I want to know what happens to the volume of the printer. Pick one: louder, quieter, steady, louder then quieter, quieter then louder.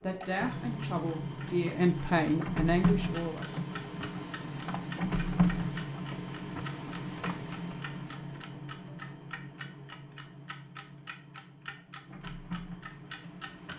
quieter.